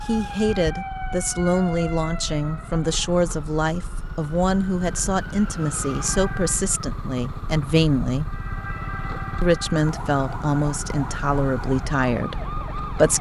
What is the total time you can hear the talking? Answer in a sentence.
You can hear the talking for 12 seconds altogether.